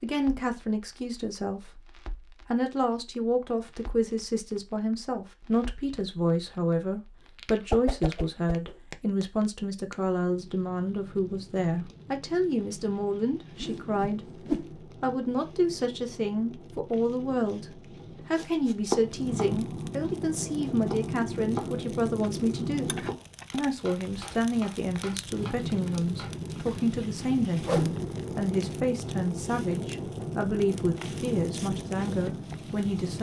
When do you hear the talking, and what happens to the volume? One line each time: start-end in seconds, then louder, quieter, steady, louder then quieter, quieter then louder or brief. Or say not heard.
0.0-14.3 steady
15.0-33.1 steady.